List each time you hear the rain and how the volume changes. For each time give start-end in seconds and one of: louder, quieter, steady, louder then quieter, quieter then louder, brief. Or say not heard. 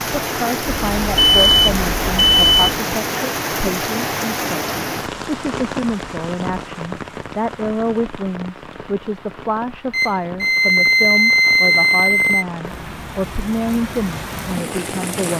0.0-15.3 quieter then louder.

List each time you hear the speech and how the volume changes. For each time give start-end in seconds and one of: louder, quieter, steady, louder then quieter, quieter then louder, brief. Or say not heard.
0.2-15.3 steady.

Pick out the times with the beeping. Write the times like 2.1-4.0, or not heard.
0.7-2.6, 9.9-12.4.